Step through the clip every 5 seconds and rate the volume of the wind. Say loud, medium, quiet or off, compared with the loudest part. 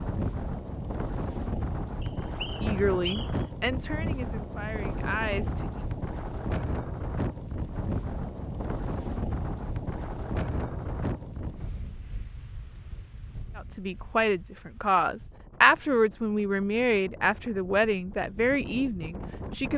loud, loud, medium, medium.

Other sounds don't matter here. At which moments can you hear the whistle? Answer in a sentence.
You can hear the whistle from 2.0 to 3.5 s.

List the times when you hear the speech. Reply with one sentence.
The speech can be heard from 2.6 to 5.7 s and from 13.6 to 19.7 s.